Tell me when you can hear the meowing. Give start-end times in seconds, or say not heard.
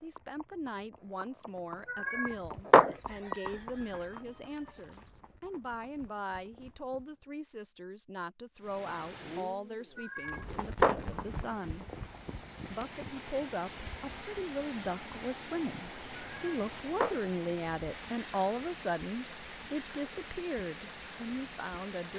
1.9-3.0, 9.9-11.0, 16.2-17.2.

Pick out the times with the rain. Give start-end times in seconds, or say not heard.
8.6-22.1.